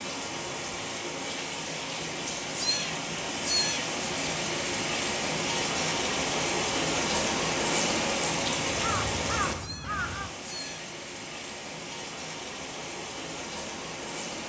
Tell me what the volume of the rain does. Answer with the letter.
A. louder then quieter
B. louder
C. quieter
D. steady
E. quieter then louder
A.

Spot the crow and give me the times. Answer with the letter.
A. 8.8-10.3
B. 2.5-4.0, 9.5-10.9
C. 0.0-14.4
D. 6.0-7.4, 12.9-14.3
A.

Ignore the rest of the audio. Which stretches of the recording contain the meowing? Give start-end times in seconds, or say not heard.
2.5-4.0, 9.5-10.9.